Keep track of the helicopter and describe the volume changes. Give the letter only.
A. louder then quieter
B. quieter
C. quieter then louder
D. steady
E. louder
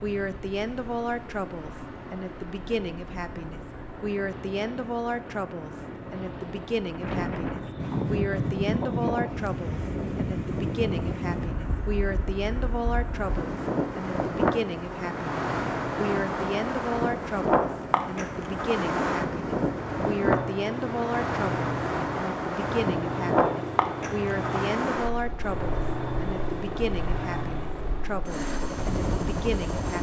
E.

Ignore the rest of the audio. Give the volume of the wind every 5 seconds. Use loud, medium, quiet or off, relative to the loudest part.
quiet, loud, loud, loud, loud, medium.